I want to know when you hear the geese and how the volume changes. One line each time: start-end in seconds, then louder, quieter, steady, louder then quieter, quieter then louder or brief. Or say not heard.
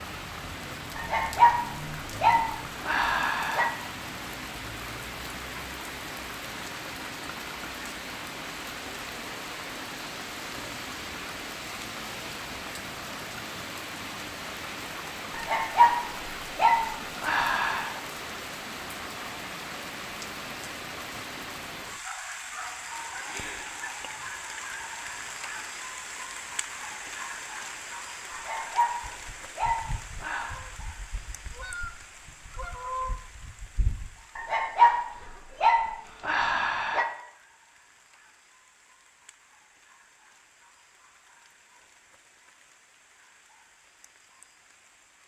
29.1-34.1 louder.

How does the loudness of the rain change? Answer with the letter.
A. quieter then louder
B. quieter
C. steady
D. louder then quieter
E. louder
B.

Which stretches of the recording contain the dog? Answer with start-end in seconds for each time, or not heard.
0.9-3.8, 15.3-18.0, 28.3-30.6, 34.4-37.0.